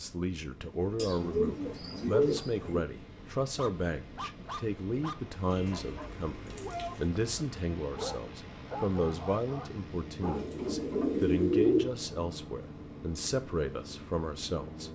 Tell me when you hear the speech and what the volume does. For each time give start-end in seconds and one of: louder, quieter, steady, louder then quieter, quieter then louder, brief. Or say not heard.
0.0-14.8 steady.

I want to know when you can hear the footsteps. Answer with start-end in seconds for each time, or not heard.
not heard.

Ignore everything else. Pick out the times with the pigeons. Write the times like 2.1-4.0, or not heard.
0.9-2.9, 5.5-7.2, 10.2-11.8.